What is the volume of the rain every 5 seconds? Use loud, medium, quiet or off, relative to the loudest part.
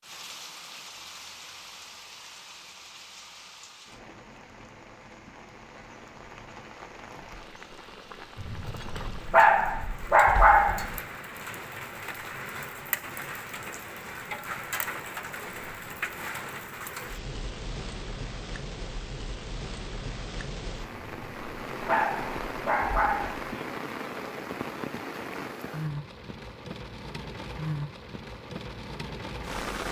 medium, medium, loud, loud, loud, loud.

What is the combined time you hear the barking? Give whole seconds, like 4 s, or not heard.
5 s.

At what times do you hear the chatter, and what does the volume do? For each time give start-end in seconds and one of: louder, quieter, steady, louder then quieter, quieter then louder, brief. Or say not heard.
not heard.